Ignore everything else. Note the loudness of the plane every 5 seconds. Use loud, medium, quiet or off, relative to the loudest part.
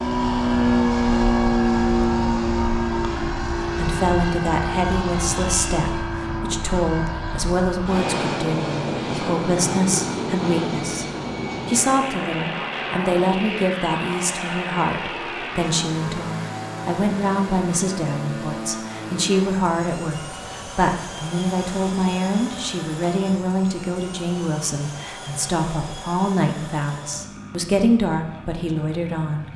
loud, medium, medium, medium, quiet, quiet.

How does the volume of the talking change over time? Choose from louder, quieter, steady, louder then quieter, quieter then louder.
steady.